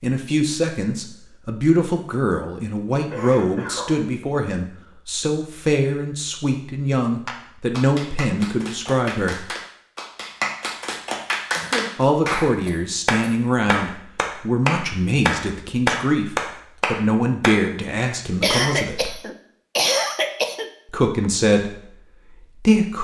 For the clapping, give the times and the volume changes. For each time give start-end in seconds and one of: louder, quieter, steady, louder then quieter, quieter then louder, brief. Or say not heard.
7.2-17.6 louder.